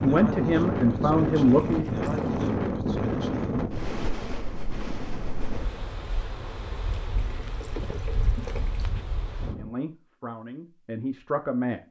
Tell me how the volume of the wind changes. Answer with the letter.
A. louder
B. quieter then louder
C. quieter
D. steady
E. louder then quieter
C.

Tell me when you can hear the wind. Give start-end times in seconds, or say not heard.
0.0-9.7.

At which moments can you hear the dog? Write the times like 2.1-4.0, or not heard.
not heard.